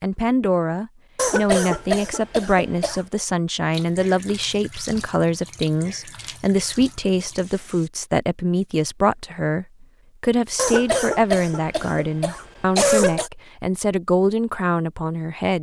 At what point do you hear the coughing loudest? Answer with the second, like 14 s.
13 s.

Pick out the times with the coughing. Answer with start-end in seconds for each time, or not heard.
1.1-3.0, 10.6-13.3.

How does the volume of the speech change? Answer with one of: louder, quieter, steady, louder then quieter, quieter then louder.
steady.